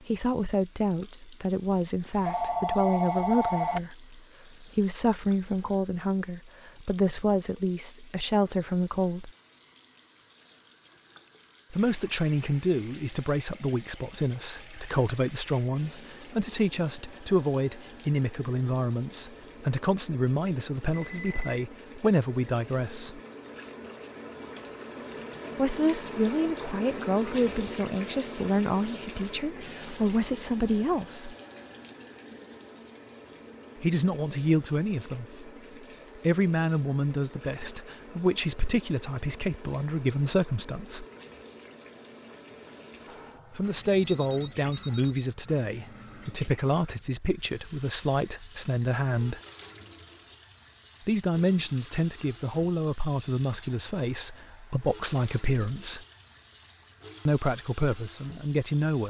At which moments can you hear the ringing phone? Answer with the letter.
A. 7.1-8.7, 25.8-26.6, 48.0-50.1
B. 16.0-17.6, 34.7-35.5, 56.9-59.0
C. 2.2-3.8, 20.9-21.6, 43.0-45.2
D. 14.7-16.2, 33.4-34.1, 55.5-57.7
C.